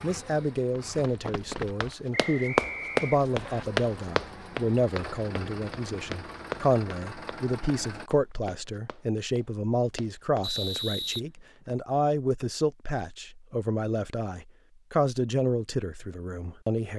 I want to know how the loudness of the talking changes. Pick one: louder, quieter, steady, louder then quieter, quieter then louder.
steady.